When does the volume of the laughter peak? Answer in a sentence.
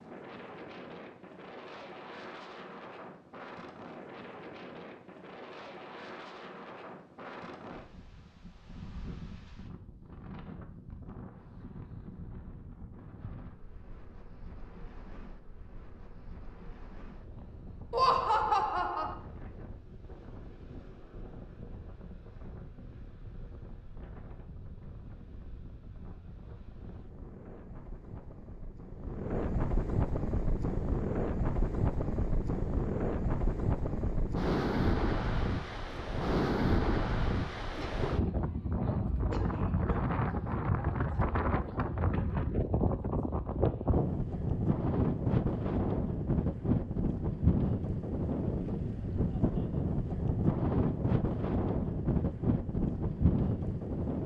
The loudest moment of the laughter is at 18 seconds.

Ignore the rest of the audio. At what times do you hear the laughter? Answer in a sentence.
You can hear the laughter from 17.9 to 19.1 s and from 37.8 to 40.0 s.